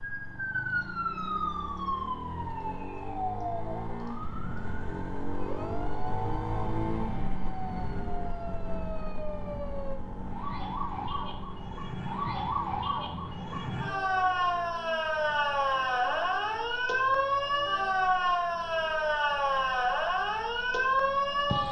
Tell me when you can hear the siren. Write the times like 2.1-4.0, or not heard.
0.0-21.6.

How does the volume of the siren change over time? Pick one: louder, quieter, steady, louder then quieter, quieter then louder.
quieter then louder.